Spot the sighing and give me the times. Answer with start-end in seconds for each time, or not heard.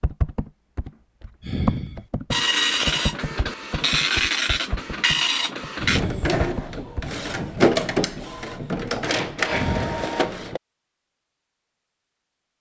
1.4-2.0, 5.8-6.4, 9.5-10.2.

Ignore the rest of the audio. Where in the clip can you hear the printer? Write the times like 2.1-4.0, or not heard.
2.3-10.6.